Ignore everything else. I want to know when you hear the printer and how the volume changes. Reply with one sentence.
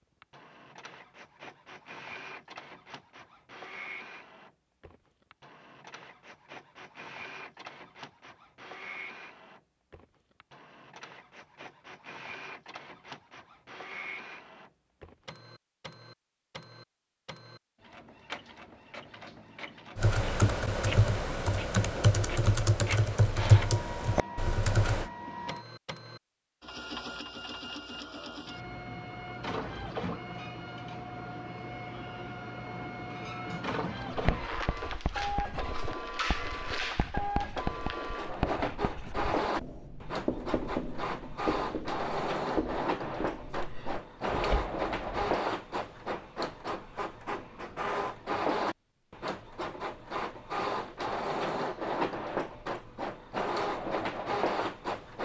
The printer can be heard from 0.2 to 55.2 s, getting louder.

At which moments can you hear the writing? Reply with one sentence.
You can hear the writing from 34.1 to 45.4 s.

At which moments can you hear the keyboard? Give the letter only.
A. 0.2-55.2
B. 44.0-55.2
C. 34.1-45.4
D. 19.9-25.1
D.